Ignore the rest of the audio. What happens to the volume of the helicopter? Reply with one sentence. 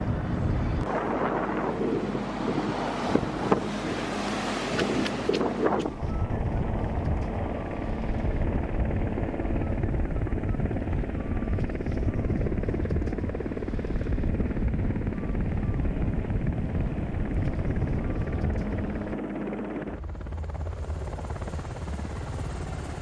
The volume of the helicopter stays about the same.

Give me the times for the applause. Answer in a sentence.
The applause can't be heard in this clip.